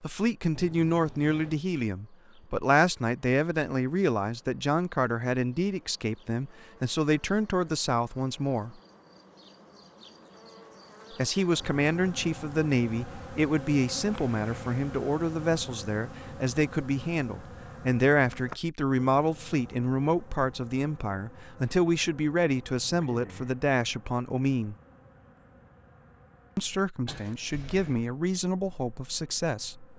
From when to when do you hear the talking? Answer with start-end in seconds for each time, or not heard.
0.0-8.8, 11.2-24.8, 26.6-29.9.